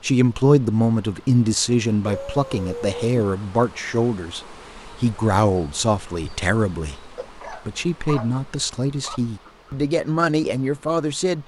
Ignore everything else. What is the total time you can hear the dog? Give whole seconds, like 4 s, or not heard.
3 s.